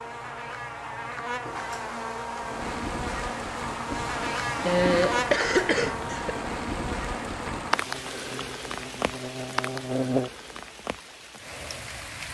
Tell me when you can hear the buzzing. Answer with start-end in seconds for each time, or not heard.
0.0-10.3.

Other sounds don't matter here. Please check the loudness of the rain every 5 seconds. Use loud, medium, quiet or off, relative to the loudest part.
loud, loud, medium.